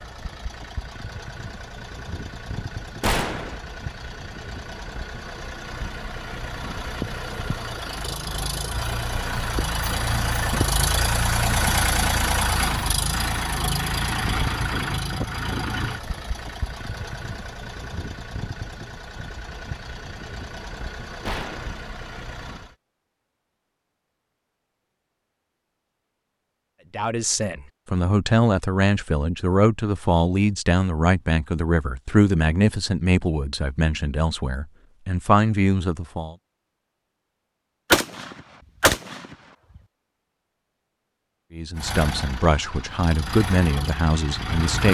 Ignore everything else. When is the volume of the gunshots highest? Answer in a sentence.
The volume of the gunshots peaks at 38 seconds.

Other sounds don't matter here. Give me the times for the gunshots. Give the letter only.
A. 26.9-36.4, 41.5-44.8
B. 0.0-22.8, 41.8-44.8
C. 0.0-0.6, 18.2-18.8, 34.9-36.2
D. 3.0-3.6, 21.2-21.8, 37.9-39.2
D.